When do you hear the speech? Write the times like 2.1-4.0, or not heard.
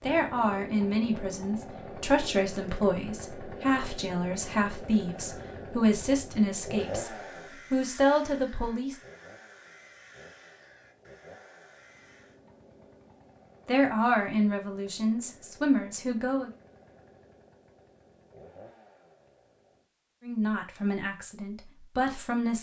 0.0-7.1, 7.7-8.9, 13.7-16.5, 20.2-22.5.